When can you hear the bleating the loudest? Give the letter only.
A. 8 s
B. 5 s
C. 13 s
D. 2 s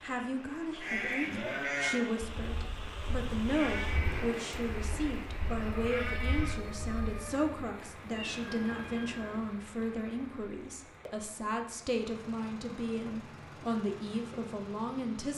D.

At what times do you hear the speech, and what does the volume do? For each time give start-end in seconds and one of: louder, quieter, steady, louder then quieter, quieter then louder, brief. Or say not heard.
0.0-15.3 steady.